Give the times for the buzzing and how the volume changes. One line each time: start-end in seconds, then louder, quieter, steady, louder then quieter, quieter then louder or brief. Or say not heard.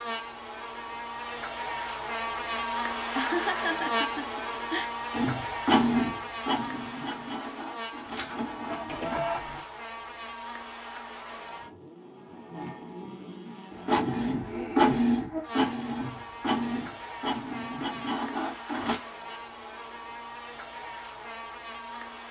0.0-22.2 quieter.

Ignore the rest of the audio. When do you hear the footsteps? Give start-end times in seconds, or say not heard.
not heard.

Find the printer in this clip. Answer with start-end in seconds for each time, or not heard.
5.1-9.6, 13.7-19.0.